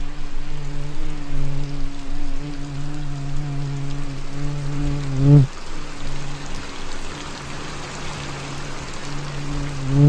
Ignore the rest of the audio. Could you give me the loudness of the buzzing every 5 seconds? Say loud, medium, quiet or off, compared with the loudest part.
medium, loud.